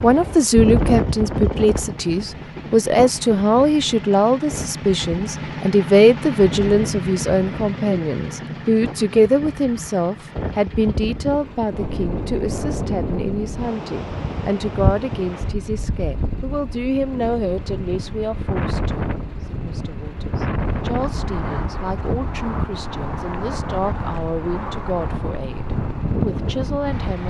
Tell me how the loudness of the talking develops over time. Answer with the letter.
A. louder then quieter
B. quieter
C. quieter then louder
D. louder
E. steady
B.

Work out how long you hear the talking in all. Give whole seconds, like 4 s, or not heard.
27 s.